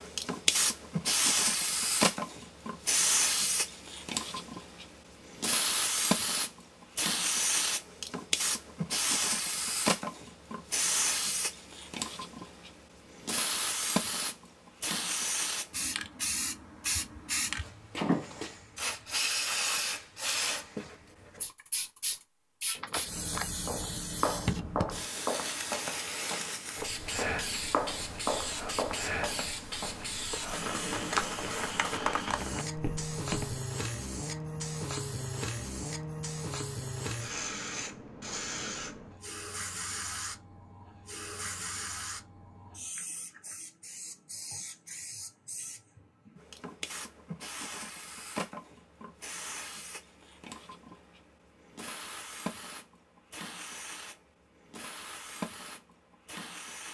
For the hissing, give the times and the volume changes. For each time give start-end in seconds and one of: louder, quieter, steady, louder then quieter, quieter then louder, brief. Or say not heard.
0.0-56.8 quieter.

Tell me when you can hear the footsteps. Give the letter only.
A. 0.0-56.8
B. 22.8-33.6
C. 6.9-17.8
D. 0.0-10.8
B.